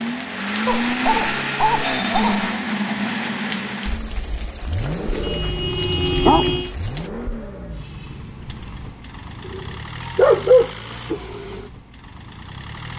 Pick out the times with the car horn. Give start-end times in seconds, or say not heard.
5.2-6.8.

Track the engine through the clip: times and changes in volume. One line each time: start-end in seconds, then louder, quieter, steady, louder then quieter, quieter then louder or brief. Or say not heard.
0.0-12.9 quieter.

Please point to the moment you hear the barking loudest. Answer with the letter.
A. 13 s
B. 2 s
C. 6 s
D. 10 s
D.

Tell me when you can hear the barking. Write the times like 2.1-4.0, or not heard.
0.7-2.5, 5.0-5.4, 6.2-6.9, 9.4-11.2.